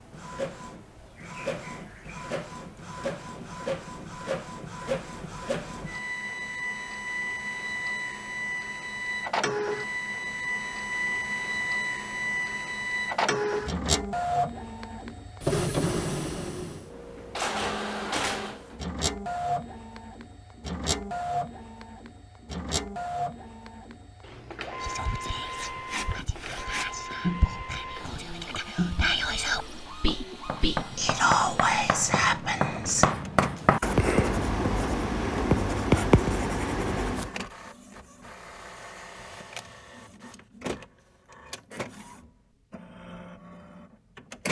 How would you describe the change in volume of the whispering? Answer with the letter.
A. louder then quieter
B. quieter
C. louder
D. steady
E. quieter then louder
C.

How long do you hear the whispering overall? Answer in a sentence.
The whispering can be heard for 8 seconds in total.